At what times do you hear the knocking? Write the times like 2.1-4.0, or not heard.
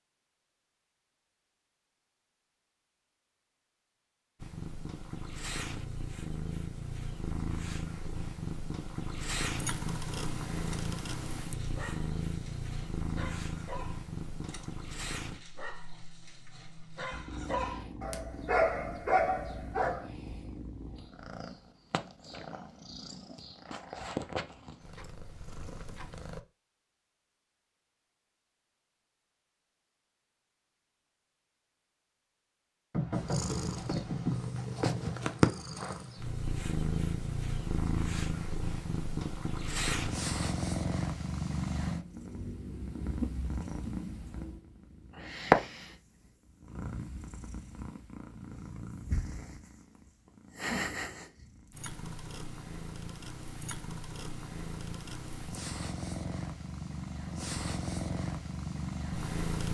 32.9-34.5.